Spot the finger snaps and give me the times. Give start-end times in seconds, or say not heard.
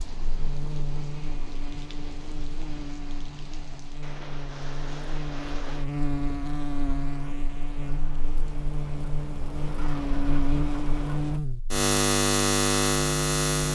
not heard.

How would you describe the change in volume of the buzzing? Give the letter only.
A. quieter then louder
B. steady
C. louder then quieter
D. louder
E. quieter
D.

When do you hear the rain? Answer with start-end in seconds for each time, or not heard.
0.0-11.4.